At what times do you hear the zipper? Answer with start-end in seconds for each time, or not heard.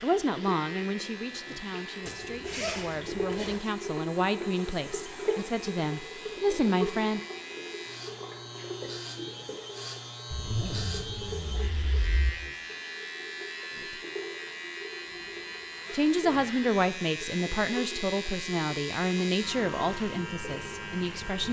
2.0-3.6, 10.3-12.3, 15.1-16.8.